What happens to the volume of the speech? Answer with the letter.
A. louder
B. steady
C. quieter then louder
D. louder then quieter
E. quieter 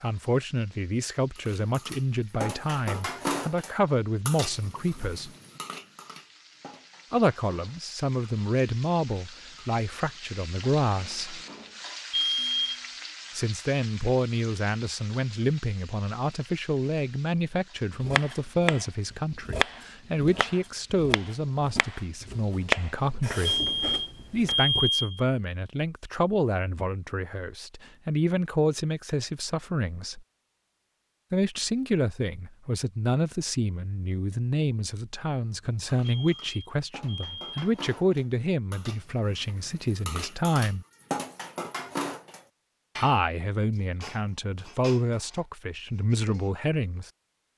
B.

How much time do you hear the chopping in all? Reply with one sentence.
You can hear the chopping for 7 seconds altogether.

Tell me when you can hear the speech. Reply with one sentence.
The speech can be heard from 0.0 to 5.3 s, from 7.1 to 11.4 s, from 13.3 to 23.6 s, from 24.3 to 30.2 s, from 31.3 to 40.9 s and from 43.0 to 47.1 s.